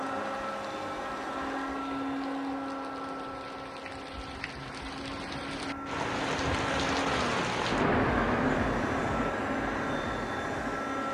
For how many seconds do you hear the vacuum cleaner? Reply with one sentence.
The vacuum cleaner can be heard for 11 seconds in total.